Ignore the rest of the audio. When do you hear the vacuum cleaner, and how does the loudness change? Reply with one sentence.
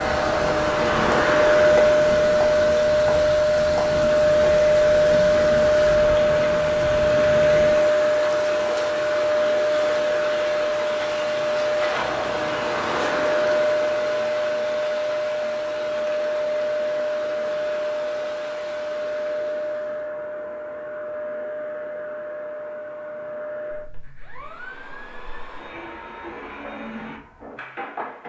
You can hear the vacuum cleaner from 0.0 to 28.2 s, getting quieter.